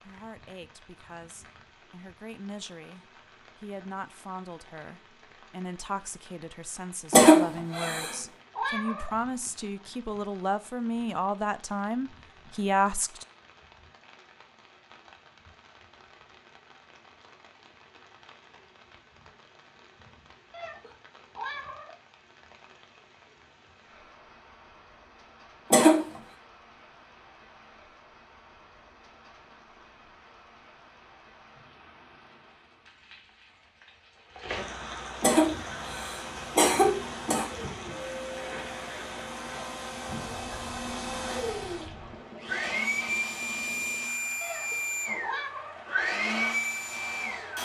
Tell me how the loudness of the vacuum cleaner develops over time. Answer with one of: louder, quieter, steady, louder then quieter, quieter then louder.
louder.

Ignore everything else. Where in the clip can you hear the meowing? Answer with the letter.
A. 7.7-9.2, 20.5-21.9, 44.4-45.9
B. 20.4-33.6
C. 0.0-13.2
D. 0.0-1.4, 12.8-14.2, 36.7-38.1
A.